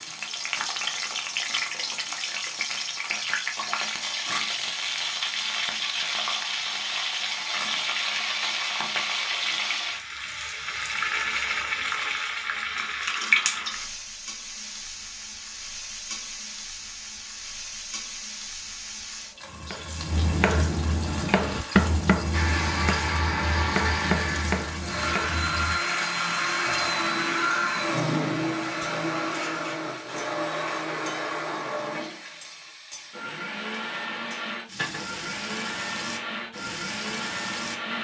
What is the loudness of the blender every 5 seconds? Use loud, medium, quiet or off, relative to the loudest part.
off, off, off, off, loud, loud, medium, medium.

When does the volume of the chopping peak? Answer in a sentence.
The loudest moment of the chopping is at 22 seconds.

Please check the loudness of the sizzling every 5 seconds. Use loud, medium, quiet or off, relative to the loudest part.
loud, loud, loud, medium, medium, medium, quiet, medium.